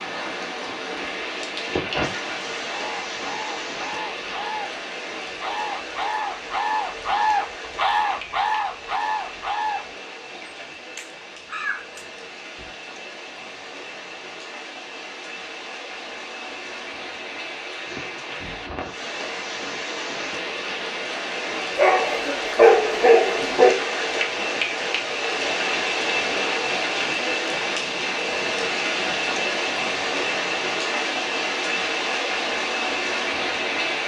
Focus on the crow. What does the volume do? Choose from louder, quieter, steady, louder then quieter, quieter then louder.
louder then quieter.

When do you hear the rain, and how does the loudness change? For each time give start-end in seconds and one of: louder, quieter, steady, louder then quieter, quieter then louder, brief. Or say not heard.
0.0-34.0 quieter then louder.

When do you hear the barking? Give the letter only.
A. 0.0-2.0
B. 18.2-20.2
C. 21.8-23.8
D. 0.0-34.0
C.